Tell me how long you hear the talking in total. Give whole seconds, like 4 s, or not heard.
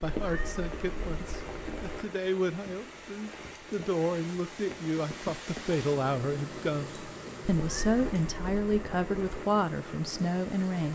11 s.